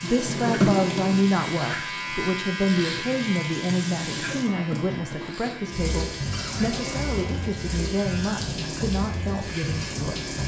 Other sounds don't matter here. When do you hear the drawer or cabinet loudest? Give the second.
1 s.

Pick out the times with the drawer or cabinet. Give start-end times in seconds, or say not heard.
0.1-1.2, 6.3-7.5.